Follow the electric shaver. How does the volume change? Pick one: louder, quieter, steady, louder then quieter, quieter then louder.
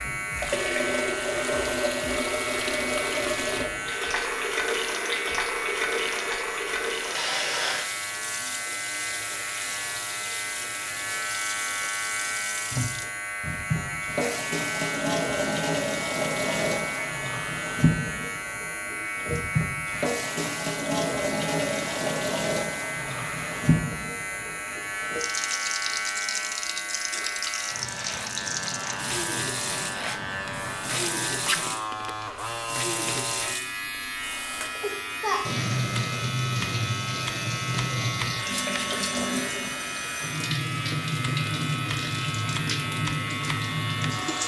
steady.